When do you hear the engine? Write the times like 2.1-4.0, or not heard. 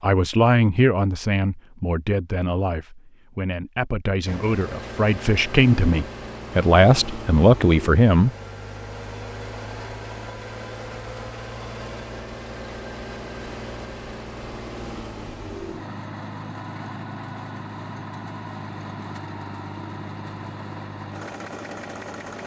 4.2-22.4.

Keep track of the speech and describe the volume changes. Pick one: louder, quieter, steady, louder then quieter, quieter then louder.
quieter then louder.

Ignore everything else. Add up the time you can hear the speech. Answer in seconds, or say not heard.
8 s.